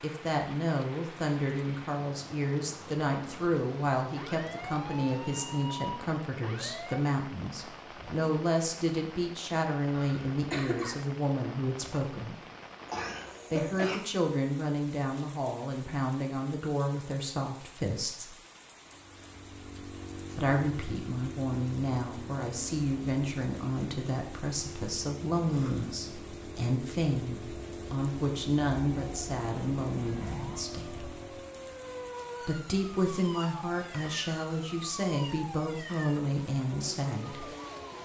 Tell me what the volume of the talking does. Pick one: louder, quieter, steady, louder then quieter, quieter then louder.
steady.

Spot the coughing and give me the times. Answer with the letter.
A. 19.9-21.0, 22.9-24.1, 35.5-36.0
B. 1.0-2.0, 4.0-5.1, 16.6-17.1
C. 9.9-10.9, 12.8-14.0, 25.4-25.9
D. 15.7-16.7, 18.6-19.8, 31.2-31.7
C.